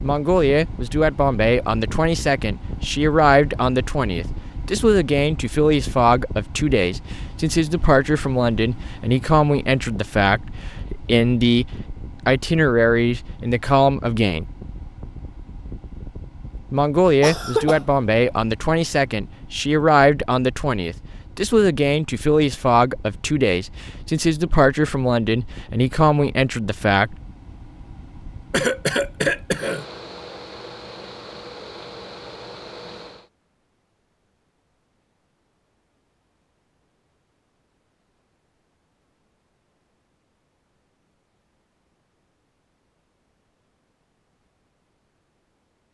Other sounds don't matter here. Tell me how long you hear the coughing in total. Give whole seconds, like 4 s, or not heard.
2 s.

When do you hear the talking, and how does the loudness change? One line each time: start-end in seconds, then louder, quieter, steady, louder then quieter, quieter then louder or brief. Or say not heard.
0.0-14.4 steady
16.7-27.1 steady.